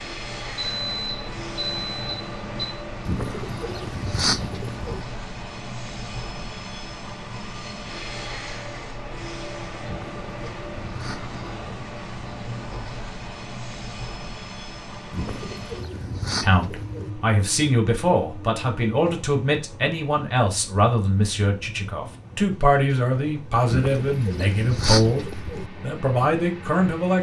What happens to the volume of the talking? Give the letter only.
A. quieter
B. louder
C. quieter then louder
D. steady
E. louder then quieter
D.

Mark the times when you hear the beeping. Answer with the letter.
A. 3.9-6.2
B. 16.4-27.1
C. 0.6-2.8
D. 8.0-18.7
C.